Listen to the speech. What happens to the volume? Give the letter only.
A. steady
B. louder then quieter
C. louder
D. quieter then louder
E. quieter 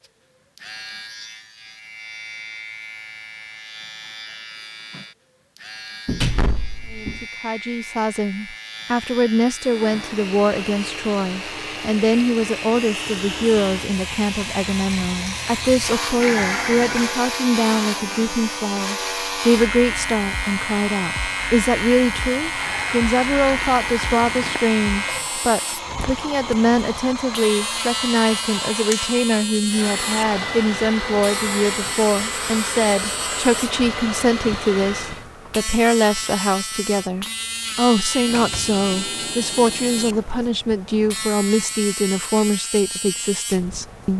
A.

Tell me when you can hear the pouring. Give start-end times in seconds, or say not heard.
16.2-17.1, 22.6-24.6.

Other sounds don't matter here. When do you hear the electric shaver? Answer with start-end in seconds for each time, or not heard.
0.0-44.1.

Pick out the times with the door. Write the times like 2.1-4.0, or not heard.
6.0-7.2, 38.2-40.2.